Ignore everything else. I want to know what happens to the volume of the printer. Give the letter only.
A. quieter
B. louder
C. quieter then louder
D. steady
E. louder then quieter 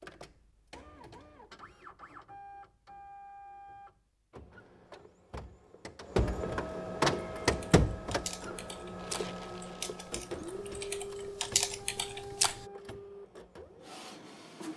E.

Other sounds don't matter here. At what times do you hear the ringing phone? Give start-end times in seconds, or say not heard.
not heard.